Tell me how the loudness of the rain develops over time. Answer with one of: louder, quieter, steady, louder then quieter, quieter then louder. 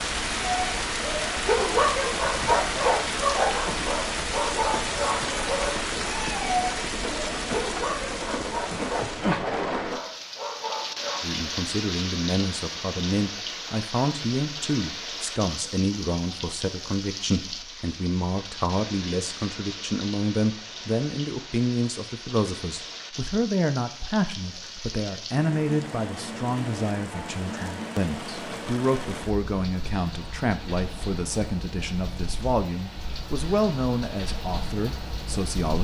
quieter.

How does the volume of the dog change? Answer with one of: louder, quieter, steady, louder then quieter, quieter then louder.
quieter.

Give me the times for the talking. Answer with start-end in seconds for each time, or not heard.
11.2-35.7.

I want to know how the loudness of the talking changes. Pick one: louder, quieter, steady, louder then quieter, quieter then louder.
steady.